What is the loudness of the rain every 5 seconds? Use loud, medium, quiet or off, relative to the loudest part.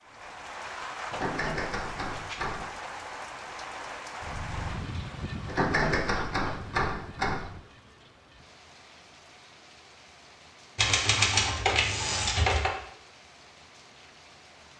loud, medium, quiet.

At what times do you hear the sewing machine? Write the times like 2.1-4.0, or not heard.
not heard.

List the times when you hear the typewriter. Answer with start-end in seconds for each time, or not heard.
1.1-2.8, 5.5-7.5, 10.8-12.7.